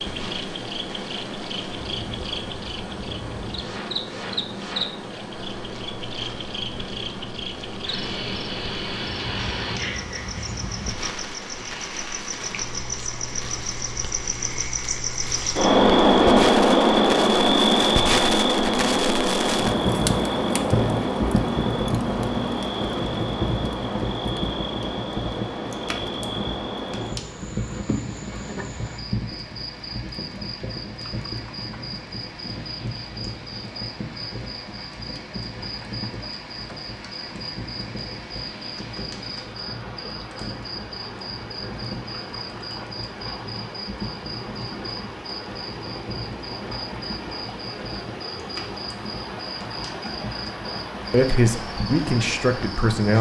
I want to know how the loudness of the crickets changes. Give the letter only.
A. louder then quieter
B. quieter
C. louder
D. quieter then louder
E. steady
A.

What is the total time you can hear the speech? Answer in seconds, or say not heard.
2 s.